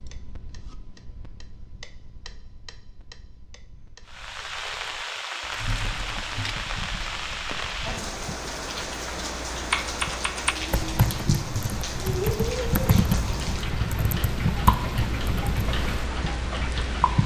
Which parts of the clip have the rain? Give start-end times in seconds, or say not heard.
4.0-17.2.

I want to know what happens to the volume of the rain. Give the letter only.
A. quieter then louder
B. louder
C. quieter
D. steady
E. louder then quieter
D.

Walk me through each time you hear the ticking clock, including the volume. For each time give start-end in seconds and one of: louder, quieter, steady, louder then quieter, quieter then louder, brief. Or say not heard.
0.0-17.2 louder.